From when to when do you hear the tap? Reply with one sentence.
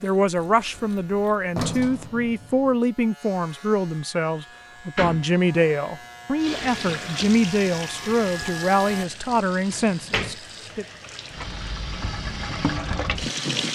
You can hear the tap from 6.3 to 13.6 s.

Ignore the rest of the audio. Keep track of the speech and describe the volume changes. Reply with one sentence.
The volume of the speech stays about the same.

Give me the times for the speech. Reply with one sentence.
The speech can be heard from 0.0 to 10.8 s.